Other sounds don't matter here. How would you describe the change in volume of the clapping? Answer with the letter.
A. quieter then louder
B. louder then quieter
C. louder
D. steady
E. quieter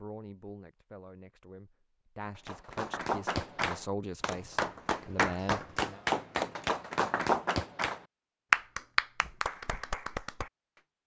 B.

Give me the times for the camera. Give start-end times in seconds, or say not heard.
not heard.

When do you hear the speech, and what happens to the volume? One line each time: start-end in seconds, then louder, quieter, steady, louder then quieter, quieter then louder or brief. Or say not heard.
0.0-6.0 louder.